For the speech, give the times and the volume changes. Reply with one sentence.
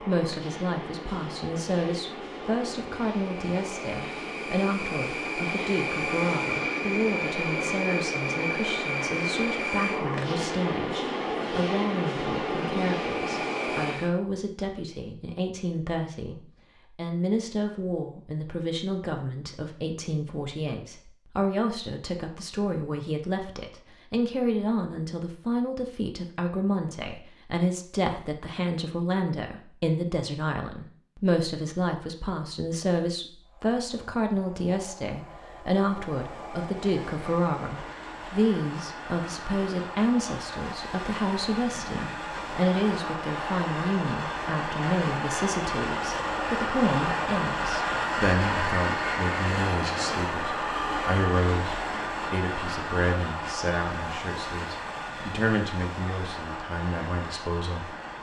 You can hear the speech from 0.0 to 57.9 s, at a steady volume.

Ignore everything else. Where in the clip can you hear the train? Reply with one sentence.
You can hear the train from 0.0 to 14.1 s and from 33.5 to 58.1 s.